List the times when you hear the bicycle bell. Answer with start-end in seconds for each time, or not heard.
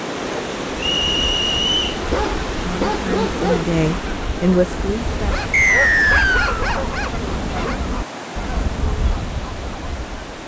not heard.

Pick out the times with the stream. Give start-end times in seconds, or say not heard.
0.0-10.4.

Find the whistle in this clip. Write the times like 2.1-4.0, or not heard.
0.8-2.0, 5.5-6.7.